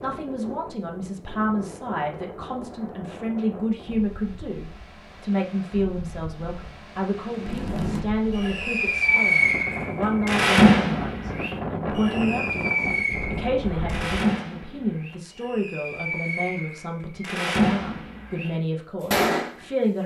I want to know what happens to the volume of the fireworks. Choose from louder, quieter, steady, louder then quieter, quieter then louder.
quieter then louder.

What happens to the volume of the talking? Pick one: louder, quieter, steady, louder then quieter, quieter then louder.
steady.